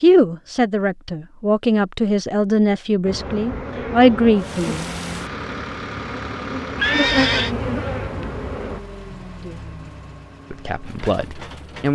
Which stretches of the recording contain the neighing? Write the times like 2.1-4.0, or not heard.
6.8-7.5.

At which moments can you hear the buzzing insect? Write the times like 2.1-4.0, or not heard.
3.0-8.8.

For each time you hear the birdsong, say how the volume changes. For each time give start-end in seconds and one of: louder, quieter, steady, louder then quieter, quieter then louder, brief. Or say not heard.
not heard.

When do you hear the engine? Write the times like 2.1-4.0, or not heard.
4.3-11.9.